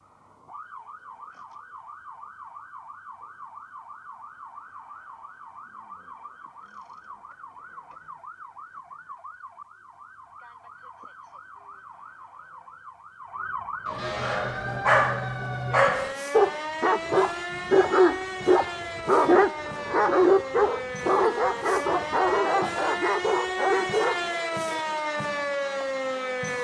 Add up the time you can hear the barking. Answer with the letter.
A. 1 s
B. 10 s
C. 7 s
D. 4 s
B.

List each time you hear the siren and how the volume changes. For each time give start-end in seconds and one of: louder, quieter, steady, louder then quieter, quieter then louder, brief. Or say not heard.
0.0-26.5 louder.